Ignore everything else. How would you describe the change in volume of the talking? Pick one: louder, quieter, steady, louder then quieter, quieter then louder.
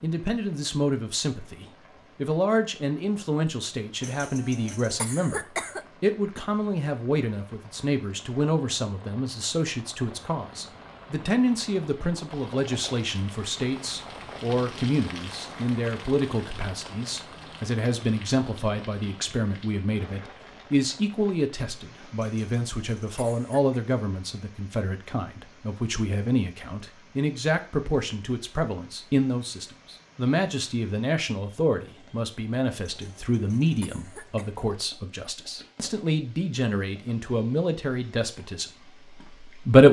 steady.